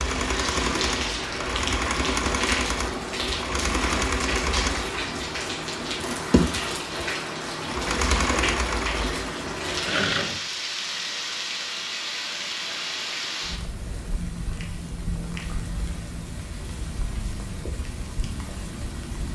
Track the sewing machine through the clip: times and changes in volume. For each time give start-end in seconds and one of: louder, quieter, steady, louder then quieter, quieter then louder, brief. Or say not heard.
0.0-10.4 steady.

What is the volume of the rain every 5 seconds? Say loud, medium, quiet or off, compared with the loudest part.
loud, loud, loud, medium.